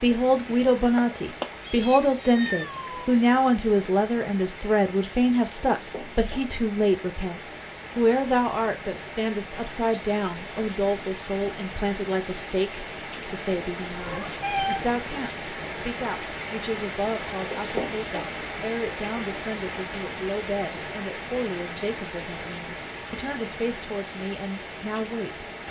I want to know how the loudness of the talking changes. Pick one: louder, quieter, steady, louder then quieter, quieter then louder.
quieter.